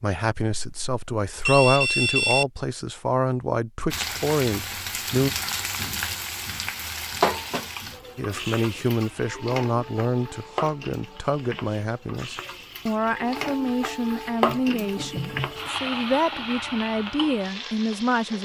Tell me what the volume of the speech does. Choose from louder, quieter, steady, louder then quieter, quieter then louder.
steady.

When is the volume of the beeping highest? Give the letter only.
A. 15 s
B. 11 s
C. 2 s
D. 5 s
C.